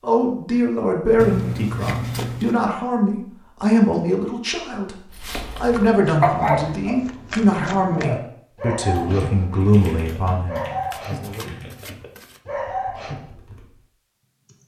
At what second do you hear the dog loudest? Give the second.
6 s.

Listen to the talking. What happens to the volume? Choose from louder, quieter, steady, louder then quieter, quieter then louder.
steady.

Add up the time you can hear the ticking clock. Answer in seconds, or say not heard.
not heard.